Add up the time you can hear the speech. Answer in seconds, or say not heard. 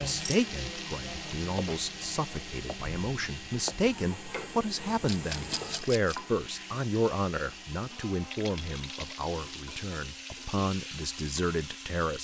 12 s.